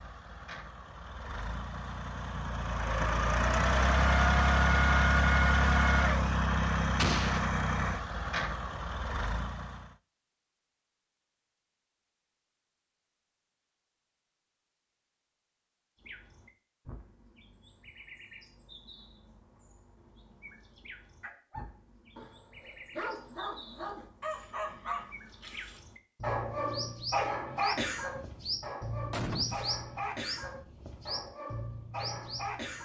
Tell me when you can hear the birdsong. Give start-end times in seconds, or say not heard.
15.9-32.8.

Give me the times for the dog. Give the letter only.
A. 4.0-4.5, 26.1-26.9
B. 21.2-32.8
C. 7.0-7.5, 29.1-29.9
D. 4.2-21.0
B.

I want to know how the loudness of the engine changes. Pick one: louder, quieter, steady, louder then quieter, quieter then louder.
louder then quieter.